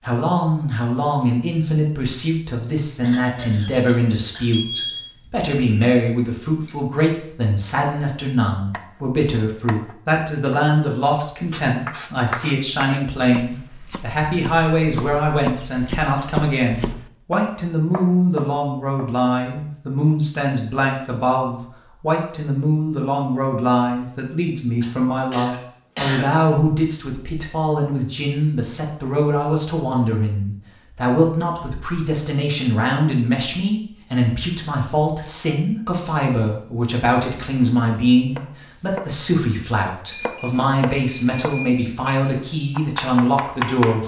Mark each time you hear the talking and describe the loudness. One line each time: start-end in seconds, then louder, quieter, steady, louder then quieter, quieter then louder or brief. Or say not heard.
0.0-44.0 steady.